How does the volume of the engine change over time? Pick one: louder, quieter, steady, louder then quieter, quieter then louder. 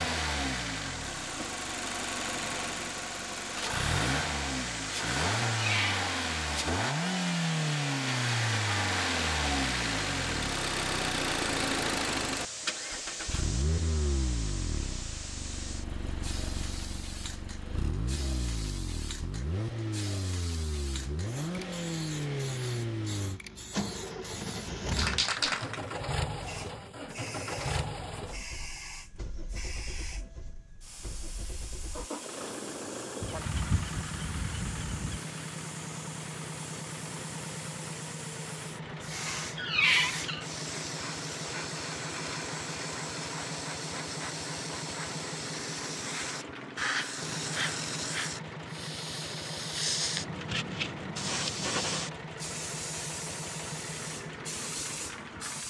quieter.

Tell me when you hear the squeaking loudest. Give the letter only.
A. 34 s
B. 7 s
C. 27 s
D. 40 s
D.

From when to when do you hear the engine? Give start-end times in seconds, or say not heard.
0.0-55.6.